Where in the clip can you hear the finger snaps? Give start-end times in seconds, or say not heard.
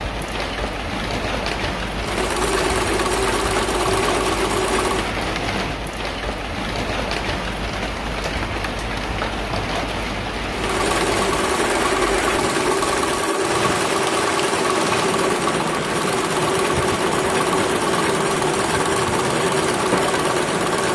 not heard.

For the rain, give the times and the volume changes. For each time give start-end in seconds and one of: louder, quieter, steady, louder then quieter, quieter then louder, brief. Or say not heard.
0.0-20.8 steady.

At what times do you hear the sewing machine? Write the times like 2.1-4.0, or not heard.
2.0-5.2, 10.5-20.8.